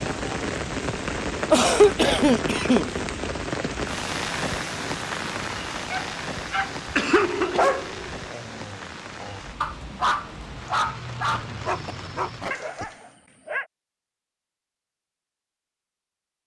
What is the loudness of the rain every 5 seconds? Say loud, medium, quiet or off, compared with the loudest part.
loud, medium, medium, off.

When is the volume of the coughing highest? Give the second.
2 s.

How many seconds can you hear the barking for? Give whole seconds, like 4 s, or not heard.
8 s.